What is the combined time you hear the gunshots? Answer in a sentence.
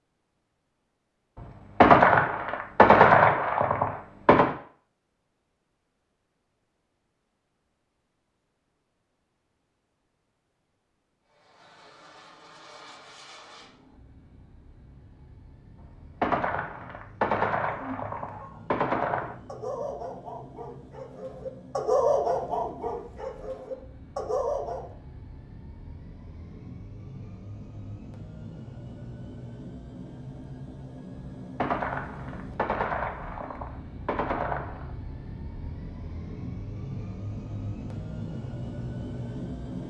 The gunshots can be heard for 10 seconds in total.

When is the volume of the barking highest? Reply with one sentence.
The loudest moment of the barking is at 22 seconds.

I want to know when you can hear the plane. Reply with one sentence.
The plane can be heard from 11.2 to 39.8 s.